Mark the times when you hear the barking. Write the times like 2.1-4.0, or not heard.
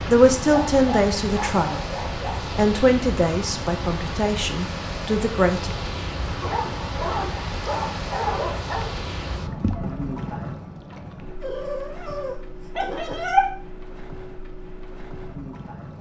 0.5-2.4, 6.4-8.9, 11.4-13.4.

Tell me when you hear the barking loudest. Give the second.
13 s.